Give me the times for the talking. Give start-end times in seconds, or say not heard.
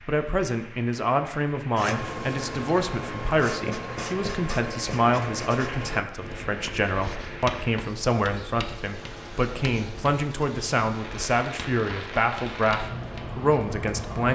0.1-14.3.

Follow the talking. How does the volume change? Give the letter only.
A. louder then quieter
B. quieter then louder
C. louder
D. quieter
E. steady
E.